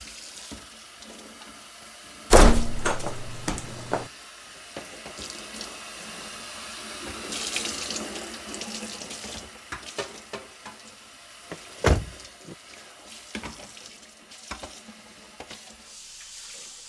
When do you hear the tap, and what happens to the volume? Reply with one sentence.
The tap can be heard from 0.0 to 16.8 s, getting louder then quieter.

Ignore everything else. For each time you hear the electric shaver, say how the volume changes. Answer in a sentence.
You can't hear the electric shaver here.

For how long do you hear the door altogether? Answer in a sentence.
You can hear the door for 3 seconds altogether.